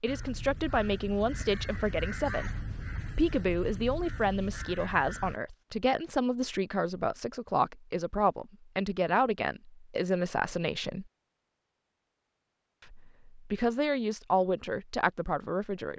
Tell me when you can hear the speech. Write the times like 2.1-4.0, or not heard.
0.0-11.1, 12.8-15.9.